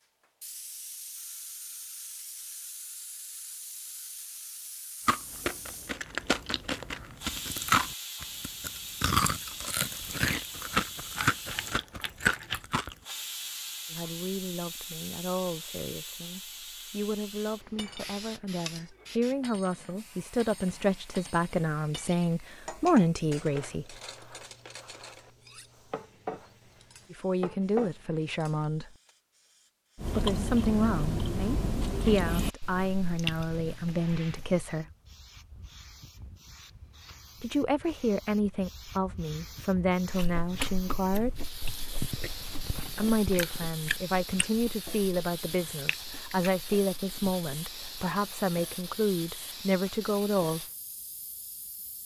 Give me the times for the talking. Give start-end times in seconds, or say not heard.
13.9-24.0, 27.1-28.9, 30.1-34.9, 37.4-41.4, 42.9-50.6.